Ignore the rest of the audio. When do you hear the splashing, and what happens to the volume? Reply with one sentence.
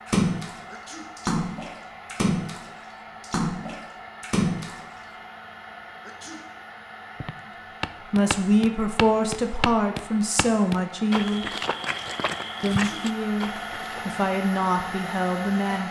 You can hear the splashing from 0.1 to 4.8 s, getting louder.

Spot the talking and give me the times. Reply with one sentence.
The talking can be heard from 8.1 to 11.5 s and from 12.6 to 15.8 s.